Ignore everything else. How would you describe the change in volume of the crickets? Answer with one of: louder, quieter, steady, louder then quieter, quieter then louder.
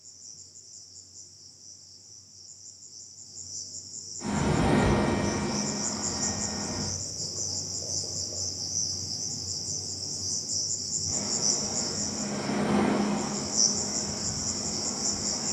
louder.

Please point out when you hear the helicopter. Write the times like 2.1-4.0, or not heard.
4.2-7.0, 11.1-15.4.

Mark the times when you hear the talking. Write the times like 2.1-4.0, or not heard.
not heard.